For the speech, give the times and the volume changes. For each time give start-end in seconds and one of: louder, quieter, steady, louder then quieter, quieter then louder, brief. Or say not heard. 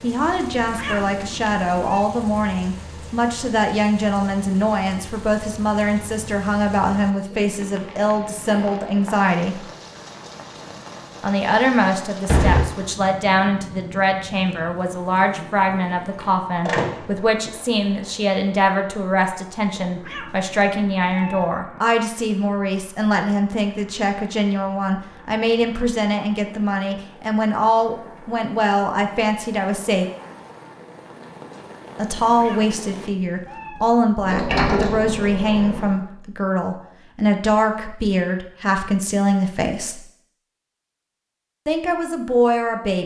0.0-9.6 steady
11.2-30.1 steady
31.9-40.0 steady
41.6-43.0 brief.